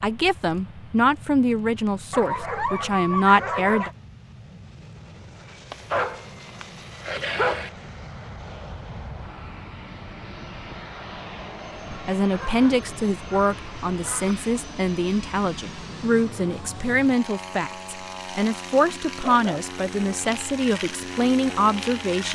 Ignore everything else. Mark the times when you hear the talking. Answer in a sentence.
You can hear the talking from 0.0 to 3.9 s and from 12.1 to 22.3 s.